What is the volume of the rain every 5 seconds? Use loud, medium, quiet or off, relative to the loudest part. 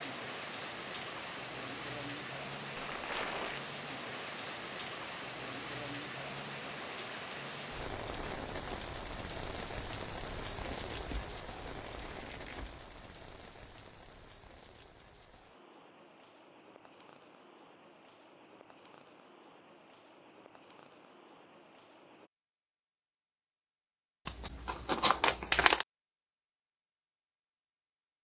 loud, loud, medium, quiet, quiet, off.